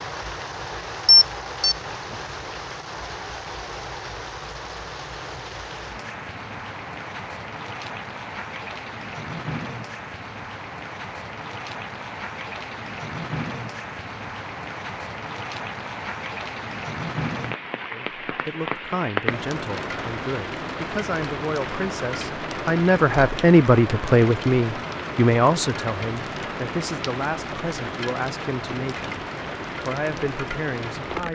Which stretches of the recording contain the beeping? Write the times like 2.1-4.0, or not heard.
1.1-1.8.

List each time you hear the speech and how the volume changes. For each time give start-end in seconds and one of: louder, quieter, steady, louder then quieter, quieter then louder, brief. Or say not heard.
17.9-29.1 louder then quieter
29.9-31.3 brief.